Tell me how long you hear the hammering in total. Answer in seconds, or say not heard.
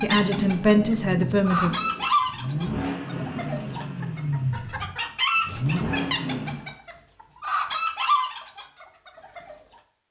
not heard.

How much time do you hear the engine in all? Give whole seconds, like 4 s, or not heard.
7 s.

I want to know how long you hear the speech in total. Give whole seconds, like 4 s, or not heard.
2 s.